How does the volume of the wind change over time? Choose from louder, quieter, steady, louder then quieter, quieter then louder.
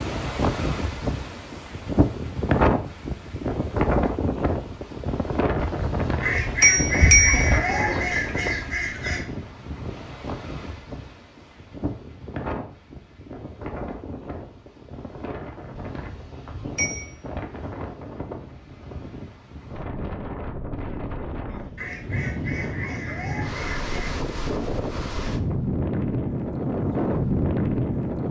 quieter then louder.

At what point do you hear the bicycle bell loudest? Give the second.
7 s.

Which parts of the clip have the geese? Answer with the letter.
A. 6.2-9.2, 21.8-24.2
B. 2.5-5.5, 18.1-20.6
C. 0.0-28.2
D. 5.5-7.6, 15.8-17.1
A.